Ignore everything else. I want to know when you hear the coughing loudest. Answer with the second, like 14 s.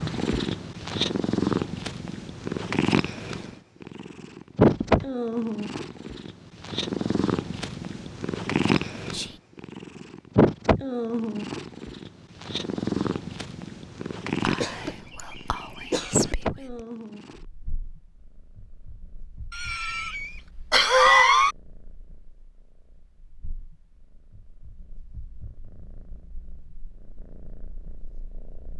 21 s.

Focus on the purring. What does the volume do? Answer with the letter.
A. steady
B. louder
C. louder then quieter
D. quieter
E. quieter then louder
D.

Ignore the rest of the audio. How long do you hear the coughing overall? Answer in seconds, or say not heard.
4 s.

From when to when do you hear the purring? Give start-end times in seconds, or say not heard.
0.0-28.7.